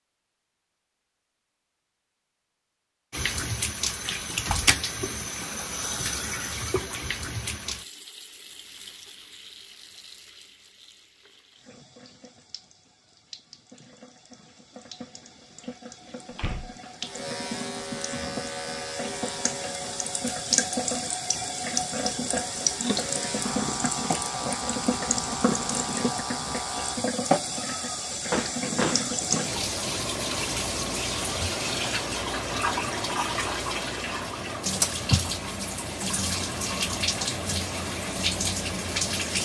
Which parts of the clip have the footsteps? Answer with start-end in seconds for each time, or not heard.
not heard.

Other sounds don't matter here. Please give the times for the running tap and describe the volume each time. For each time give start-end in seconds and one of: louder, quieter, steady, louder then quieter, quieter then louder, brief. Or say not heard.
3.1-39.3 quieter then louder.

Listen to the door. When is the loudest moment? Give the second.
29 s.